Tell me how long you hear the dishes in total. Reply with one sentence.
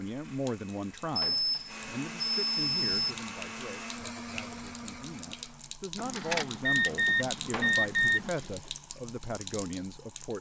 The dishes can't be heard in this clip.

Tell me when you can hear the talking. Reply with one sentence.
You can hear the talking from 0.0 to 10.3 s.